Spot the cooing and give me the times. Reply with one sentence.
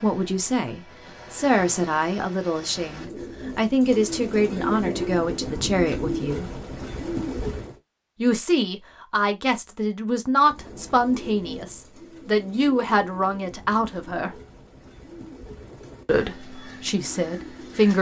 The cooing can be heard from 2.8 to 7.8 s and from 10.3 to 17.9 s.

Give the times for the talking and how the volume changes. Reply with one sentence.
The talking can be heard from 0.0 to 6.5 s, at a steady volume; from 8.2 to 14.4 s, at a steady volume; and briefly from 16.1 to 17.9 s.